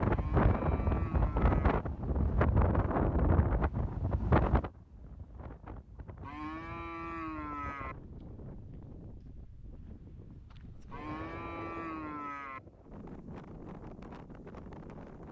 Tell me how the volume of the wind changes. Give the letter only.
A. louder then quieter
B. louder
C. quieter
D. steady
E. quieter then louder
C.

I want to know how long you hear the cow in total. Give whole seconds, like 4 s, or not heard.
5 s.